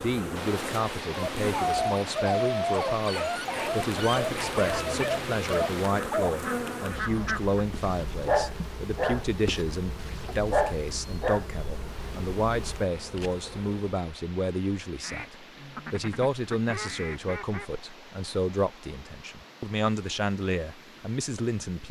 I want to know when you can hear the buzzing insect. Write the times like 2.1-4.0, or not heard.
0.0-2.0, 3.2-14.0.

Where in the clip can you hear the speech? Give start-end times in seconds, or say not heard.
0.0-21.8.